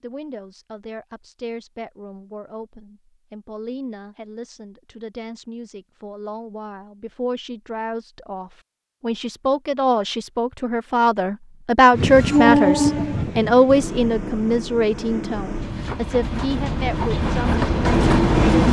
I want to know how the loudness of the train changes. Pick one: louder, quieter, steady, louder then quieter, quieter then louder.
quieter then louder.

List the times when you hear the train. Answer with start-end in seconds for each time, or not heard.
11.9-18.6.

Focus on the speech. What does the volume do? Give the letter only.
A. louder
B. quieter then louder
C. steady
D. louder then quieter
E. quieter
D.